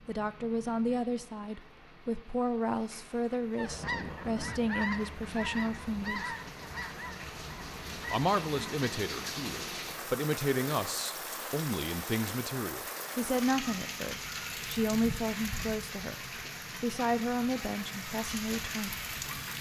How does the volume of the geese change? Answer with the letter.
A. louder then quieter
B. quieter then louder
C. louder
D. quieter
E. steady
D.